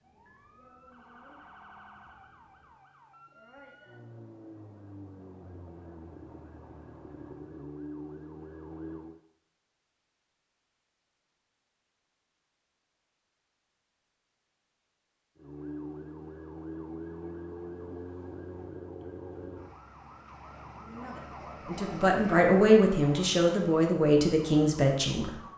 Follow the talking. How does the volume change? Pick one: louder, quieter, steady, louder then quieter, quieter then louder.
louder.